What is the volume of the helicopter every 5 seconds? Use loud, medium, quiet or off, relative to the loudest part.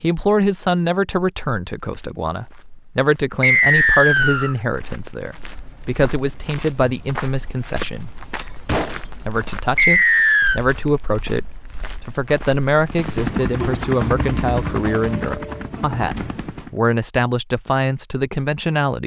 off, off, loud, medium.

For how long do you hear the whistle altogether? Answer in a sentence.
You can hear the whistle for 2 seconds altogether.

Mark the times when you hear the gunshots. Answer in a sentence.
The gunshots can be heard from 8.7 to 9.1 s.